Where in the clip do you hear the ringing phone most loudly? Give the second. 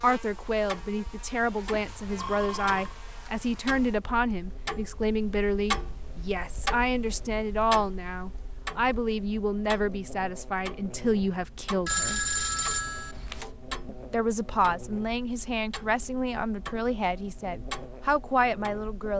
12 s.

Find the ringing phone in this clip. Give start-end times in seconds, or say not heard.
1.7-3.0, 11.8-13.5.